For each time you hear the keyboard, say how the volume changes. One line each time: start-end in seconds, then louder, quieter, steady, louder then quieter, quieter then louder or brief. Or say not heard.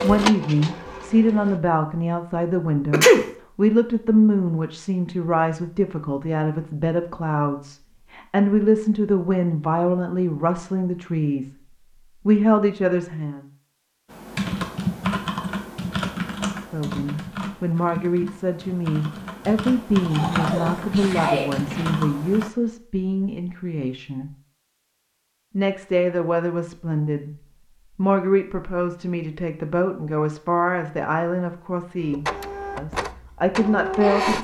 14.1-22.5 quieter then louder.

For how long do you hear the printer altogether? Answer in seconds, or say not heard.
4 s.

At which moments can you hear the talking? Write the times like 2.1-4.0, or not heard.
0.0-11.5, 12.2-13.4, 16.6-24.3, 25.6-27.4, 27.9-34.3.